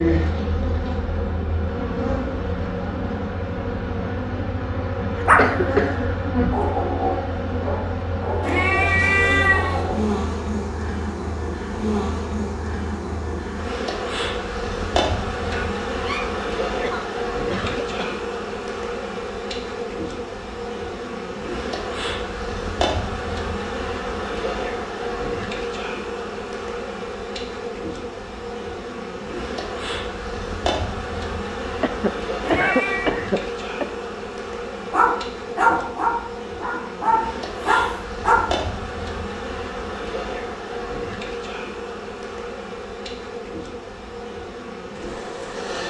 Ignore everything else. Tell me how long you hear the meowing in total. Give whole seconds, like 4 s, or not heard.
3 s.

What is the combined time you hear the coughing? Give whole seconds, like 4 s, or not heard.
4 s.